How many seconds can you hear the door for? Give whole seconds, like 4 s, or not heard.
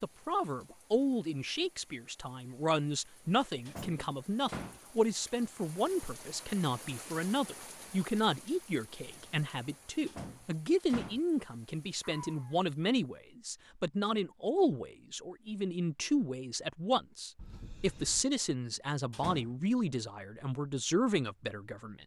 3 s.